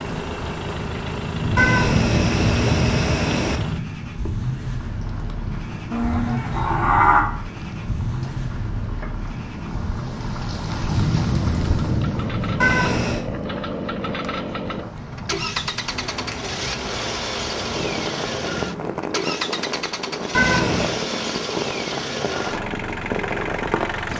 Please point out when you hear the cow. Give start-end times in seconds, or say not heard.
5.9-7.2.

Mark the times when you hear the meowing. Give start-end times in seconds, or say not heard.
1.6-3.6, 12.6-13.2, 20.3-20.9.